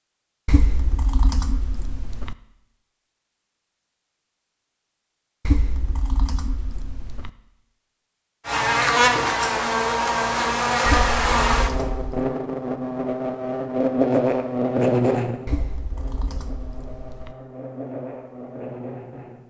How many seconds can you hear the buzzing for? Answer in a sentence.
The buzzing can be heard for 11 seconds in total.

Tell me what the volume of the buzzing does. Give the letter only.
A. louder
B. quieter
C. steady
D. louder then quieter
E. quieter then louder
B.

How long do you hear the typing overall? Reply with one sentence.
You can hear the typing for 7 seconds altogether.